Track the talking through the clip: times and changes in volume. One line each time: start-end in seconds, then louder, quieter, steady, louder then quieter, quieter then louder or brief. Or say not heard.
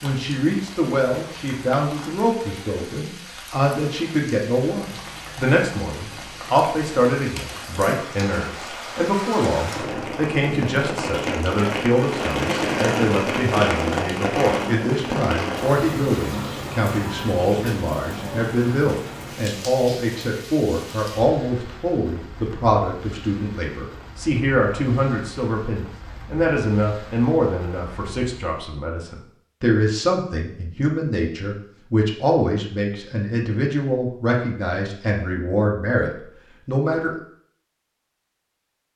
0.0-37.1 steady.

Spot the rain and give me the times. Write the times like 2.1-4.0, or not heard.
0.0-28.6.